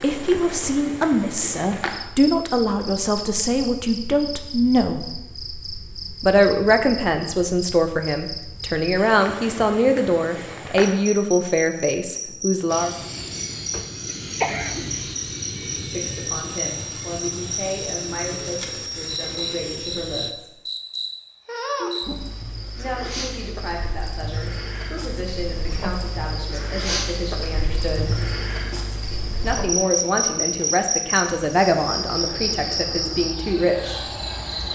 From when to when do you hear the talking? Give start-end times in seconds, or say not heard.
0.0-5.1, 6.2-12.9, 15.9-20.5, 22.8-28.1, 29.4-34.1.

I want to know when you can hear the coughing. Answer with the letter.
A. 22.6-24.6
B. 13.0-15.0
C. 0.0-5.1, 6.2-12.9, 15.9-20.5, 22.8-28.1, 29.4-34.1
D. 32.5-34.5
B.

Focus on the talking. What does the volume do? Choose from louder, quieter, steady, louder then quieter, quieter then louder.
quieter then louder.